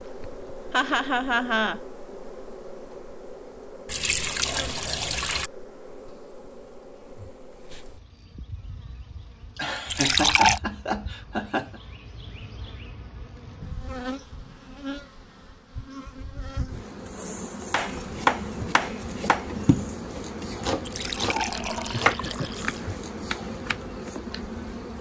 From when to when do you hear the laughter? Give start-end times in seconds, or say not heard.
0.7-1.8, 9.6-11.8, 21.9-23.0.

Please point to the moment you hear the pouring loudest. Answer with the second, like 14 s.
10 s.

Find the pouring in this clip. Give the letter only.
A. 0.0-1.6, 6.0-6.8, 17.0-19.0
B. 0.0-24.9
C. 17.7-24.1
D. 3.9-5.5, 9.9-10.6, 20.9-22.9
D.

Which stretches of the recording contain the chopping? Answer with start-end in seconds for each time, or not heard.
17.7-24.1.